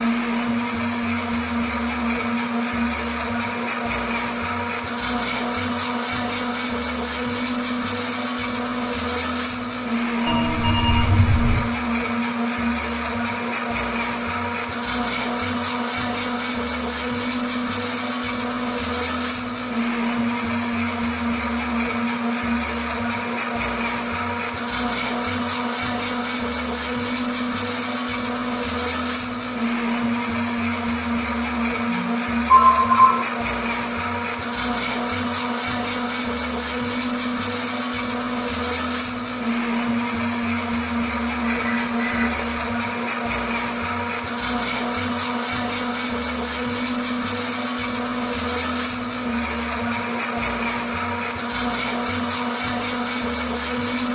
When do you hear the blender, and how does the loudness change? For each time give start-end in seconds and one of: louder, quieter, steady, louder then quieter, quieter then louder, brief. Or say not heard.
0.0-54.0 steady.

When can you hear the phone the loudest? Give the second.
33 s.